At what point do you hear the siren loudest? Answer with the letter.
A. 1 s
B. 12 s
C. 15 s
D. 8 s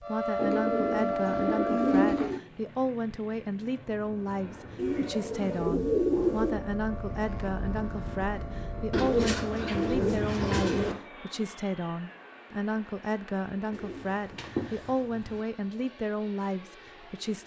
A.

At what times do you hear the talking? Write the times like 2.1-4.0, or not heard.
0.0-17.4.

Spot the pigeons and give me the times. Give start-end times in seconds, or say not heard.
0.3-2.4, 4.8-6.6, 8.9-10.9, 13.7-15.4.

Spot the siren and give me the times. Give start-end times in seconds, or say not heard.
0.0-2.3, 6.1-10.3.